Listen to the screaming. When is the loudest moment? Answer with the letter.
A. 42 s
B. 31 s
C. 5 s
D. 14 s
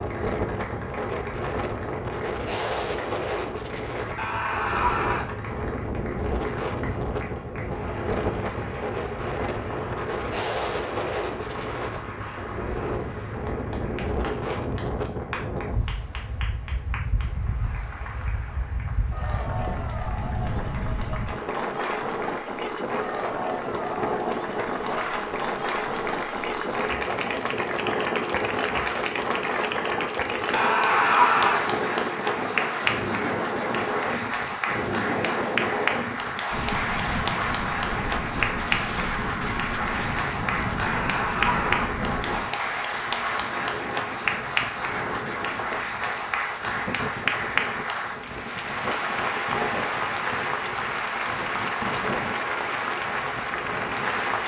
B.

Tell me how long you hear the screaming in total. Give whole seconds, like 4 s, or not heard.
3 s.